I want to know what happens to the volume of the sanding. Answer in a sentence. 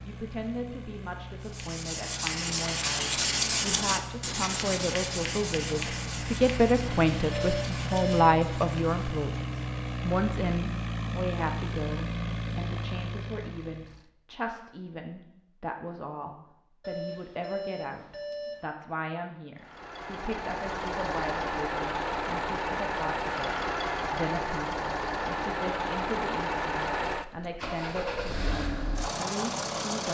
The volume of the sanding goes down.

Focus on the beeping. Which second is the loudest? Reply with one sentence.
The volume of the beeping peaks at 8 seconds.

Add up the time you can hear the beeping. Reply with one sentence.
You can hear the beeping for 3 seconds altogether.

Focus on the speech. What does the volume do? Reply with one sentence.
The volume of the speech goes up, then down.